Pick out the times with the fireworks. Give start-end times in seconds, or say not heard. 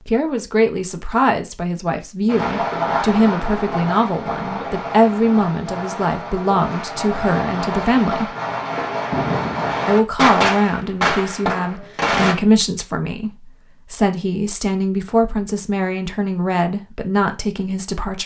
2.2-12.3.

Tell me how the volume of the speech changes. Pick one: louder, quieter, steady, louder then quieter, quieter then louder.
steady.